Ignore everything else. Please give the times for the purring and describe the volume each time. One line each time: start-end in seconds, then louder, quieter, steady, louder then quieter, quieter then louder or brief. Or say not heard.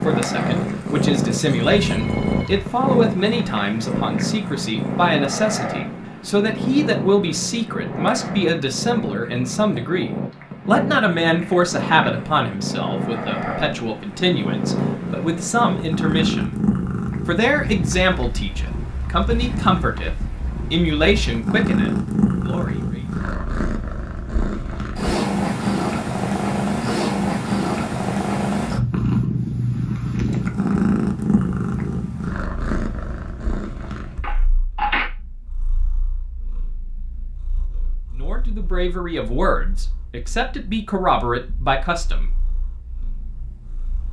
0.0-44.0 quieter.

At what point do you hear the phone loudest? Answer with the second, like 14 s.
35 s.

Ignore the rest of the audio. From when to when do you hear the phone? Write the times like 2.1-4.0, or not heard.
1.6-2.7, 34.2-35.1.